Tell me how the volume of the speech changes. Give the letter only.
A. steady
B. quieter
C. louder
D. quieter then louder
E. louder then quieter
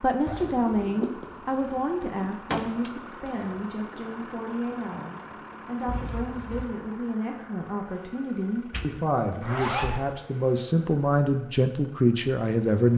D.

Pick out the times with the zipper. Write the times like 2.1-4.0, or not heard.
0.2-2.3, 5.8-6.7, 9.4-10.0.